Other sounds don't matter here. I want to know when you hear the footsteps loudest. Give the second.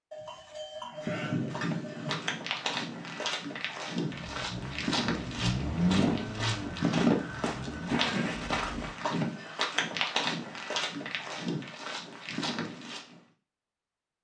7 s.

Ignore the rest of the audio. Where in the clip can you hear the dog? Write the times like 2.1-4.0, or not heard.
not heard.